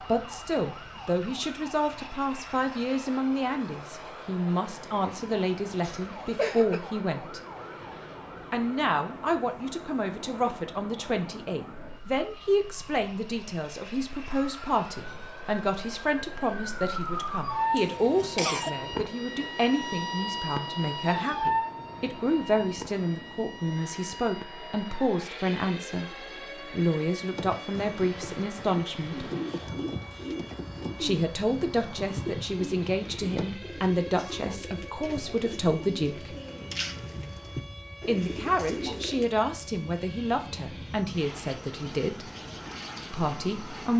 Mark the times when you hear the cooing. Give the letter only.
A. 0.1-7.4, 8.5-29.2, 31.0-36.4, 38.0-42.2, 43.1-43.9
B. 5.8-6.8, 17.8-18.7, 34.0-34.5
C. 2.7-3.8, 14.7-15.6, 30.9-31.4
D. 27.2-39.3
D.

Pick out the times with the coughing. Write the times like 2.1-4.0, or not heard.
5.8-6.8, 17.8-18.7, 34.0-34.5.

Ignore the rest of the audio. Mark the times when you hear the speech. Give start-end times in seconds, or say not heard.
0.1-7.4, 8.5-29.2, 31.0-36.4, 38.0-42.2, 43.1-43.9.